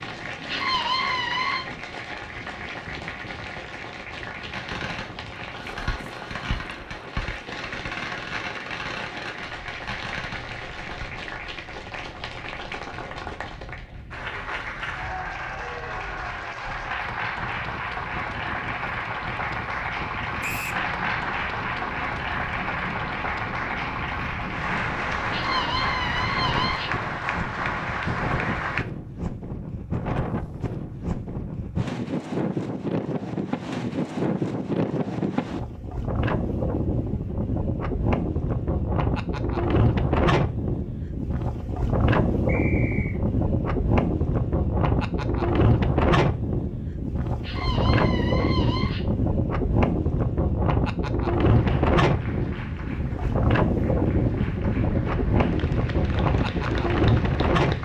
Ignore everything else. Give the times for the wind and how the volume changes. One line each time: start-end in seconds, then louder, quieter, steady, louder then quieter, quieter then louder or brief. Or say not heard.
0.0-57.7 louder.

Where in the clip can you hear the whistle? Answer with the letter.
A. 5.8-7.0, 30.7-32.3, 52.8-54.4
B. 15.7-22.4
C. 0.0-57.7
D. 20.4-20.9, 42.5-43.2
D.